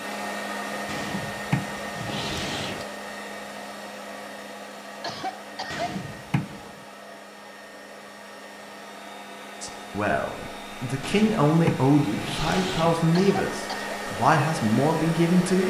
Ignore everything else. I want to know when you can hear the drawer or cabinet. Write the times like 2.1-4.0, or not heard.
0.8-2.9, 5.7-6.7, 11.0-13.0.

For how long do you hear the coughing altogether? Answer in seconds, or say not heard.
2 s.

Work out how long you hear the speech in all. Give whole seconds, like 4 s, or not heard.
6 s.